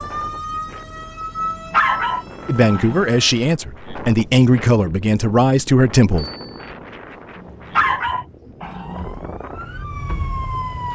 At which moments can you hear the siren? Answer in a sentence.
You can hear the siren from 0.0 to 3.4 s and from 8.8 to 10.9 s.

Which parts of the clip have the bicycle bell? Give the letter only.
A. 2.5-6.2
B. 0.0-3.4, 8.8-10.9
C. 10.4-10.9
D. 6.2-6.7
D.